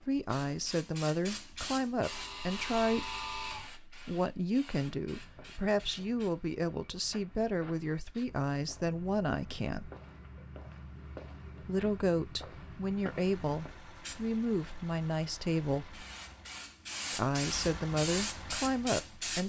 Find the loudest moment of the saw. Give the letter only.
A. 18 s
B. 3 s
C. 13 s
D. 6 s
B.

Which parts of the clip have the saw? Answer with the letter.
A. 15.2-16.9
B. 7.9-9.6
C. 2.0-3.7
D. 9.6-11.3
C.